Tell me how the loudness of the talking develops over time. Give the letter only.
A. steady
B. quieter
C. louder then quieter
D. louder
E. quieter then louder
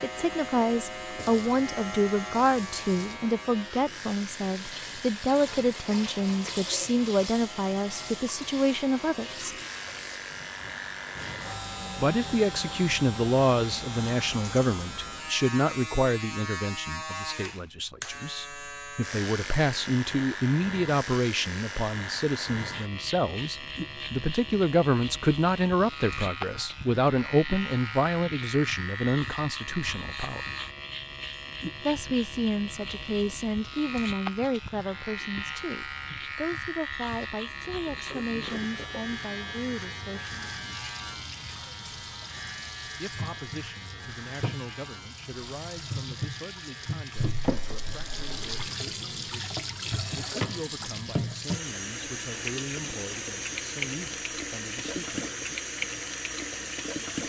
B.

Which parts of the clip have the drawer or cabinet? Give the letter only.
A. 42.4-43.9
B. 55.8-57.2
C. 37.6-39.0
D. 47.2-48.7
D.